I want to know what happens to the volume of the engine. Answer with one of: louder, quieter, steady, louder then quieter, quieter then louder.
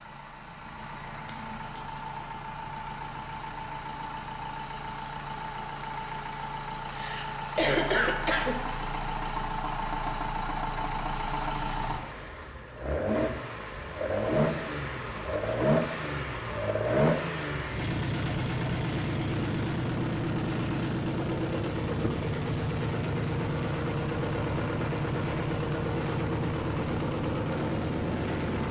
louder.